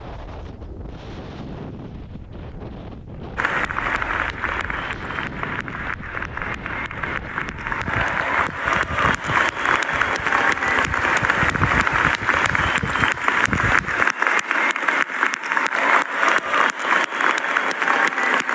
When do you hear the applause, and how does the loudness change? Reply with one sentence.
You can hear the applause from 3.4 to 18.5 s, getting louder.